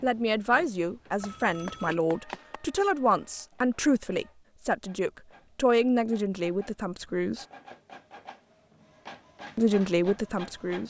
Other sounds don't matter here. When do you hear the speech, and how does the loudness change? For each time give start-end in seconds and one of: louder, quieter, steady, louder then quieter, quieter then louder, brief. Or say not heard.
0.0-7.5 steady
9.6-10.8 brief.